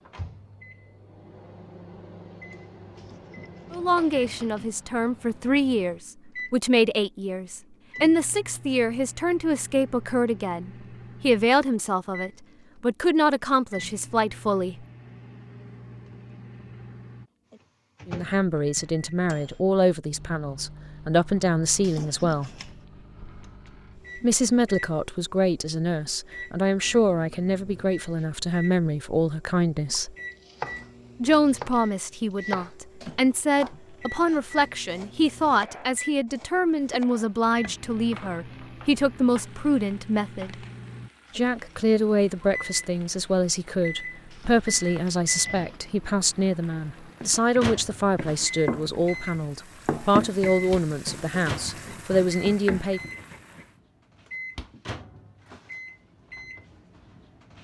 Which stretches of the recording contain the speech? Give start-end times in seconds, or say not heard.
3.7-14.8, 18.1-22.5, 24.1-30.1, 31.2-40.5, 41.4-53.0.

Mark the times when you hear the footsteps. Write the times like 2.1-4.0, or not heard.
not heard.